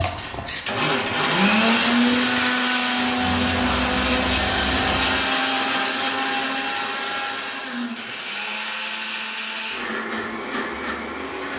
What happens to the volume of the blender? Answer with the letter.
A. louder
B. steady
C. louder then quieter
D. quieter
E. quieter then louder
D.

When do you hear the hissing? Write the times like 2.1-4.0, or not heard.
0.0-5.2.